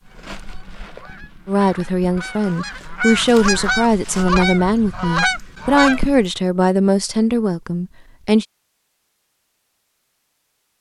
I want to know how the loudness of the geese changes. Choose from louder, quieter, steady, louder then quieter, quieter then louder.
louder.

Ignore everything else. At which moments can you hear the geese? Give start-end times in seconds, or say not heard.
0.1-6.3.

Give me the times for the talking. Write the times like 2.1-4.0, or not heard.
1.4-8.4.